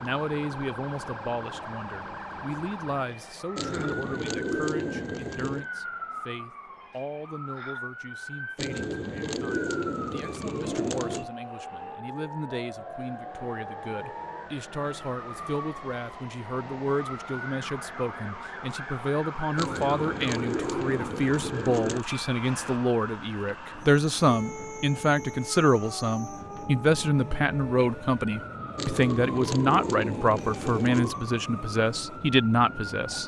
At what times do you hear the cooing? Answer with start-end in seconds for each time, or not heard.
3.5-5.7, 8.6-11.3, 19.6-22.1, 28.8-31.1.